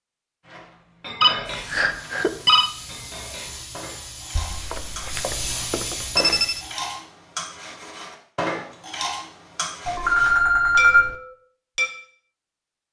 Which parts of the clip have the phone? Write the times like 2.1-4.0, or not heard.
1.2-2.7, 4.3-6.7, 9.8-11.2.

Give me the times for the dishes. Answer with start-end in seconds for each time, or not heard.
0.5-11.9.